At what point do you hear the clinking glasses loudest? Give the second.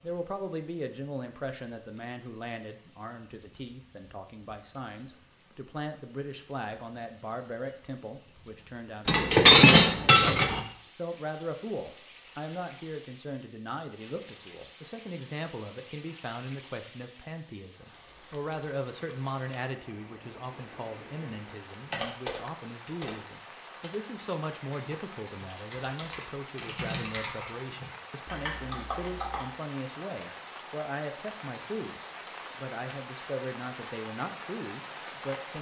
10 s.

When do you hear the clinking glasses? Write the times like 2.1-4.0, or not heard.
9.1-10.6, 17.9-18.9.